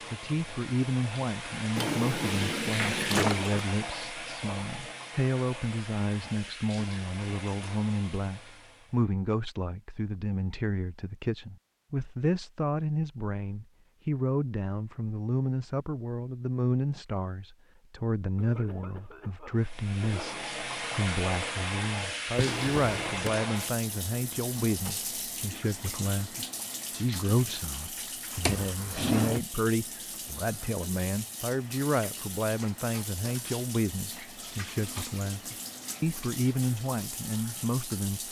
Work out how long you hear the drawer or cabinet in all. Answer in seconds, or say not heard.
4 s.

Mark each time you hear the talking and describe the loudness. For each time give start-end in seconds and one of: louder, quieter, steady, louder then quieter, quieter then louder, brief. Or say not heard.
0.1-38.2 steady.